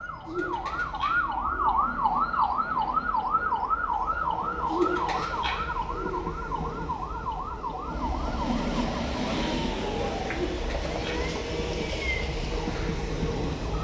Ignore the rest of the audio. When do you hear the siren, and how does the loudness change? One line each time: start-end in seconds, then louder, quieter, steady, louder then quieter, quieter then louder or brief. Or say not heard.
0.0-13.7 quieter.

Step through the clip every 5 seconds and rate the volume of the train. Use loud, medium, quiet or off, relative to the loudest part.
medium, loud, loud.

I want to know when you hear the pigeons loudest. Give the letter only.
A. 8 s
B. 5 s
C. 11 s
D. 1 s
B.